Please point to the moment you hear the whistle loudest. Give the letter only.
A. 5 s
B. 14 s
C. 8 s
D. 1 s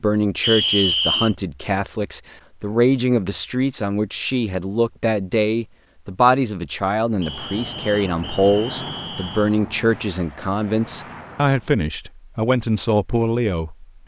D.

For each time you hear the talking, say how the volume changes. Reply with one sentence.
The talking can be heard from 0.0 to 14.0 s, at a steady volume.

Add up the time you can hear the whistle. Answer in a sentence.
You can hear the whistle for 3 seconds altogether.